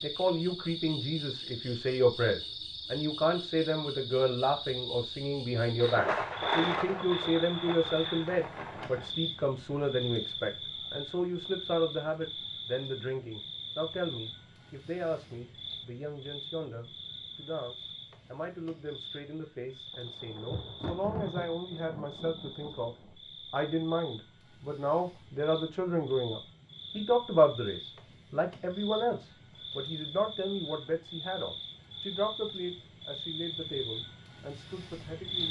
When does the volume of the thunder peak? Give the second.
7 s.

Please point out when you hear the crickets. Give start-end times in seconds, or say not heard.
0.0-35.4.